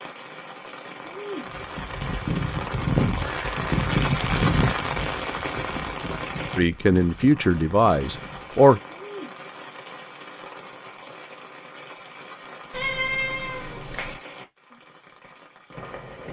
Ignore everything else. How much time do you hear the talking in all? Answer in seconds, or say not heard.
2 s.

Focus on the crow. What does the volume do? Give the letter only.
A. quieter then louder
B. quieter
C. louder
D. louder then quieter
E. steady
B.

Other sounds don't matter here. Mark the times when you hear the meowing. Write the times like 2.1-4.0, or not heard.
12.7-14.2.